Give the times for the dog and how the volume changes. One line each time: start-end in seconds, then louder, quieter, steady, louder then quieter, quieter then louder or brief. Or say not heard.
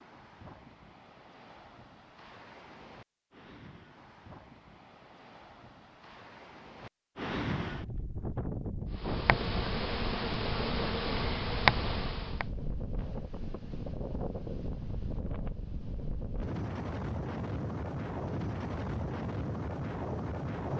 not heard.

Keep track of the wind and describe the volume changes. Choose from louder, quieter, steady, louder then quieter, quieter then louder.
louder.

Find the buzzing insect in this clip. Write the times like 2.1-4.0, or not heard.
8.9-12.4.